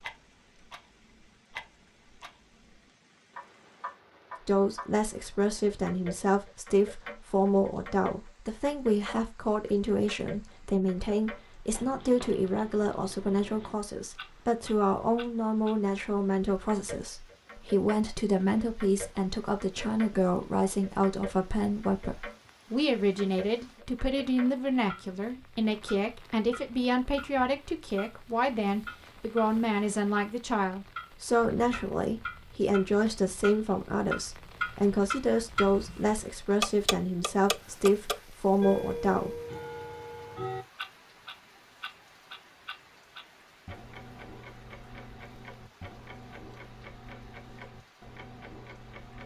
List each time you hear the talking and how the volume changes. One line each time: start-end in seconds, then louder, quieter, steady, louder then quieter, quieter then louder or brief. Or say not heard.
4.5-39.4 steady.